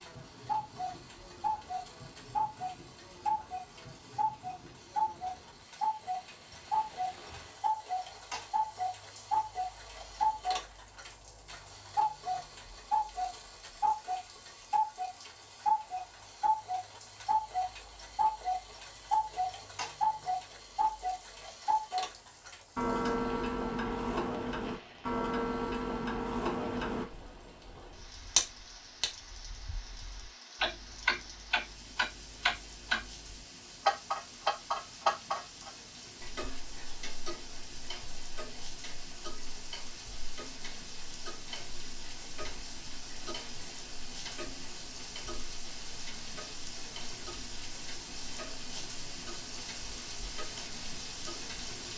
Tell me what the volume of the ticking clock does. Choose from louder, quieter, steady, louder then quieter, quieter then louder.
quieter.